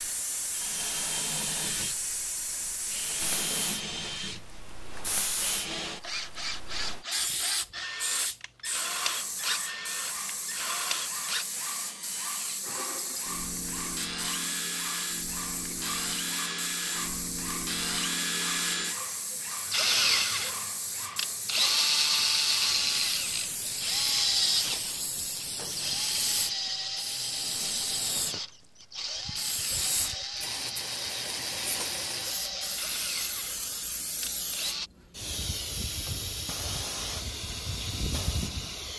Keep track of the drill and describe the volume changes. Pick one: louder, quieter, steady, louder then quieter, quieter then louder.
louder then quieter.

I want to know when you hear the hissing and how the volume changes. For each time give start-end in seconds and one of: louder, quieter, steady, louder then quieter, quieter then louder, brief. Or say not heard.
0.0-38.9 steady.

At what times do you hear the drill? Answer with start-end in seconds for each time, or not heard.
0.0-34.9.